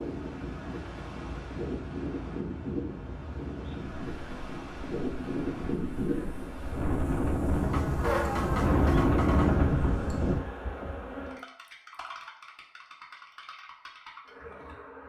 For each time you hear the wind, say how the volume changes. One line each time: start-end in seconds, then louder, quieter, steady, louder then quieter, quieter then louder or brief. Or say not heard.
0.0-10.4 louder.